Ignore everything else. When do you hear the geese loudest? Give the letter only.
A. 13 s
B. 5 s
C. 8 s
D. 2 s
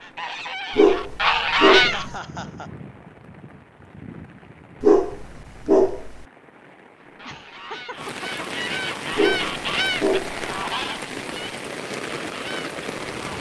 D.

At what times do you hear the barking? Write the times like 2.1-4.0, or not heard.
0.8-2.1, 4.8-6.2, 9.2-10.4.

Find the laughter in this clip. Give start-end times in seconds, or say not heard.
1.8-2.7, 7.2-8.4.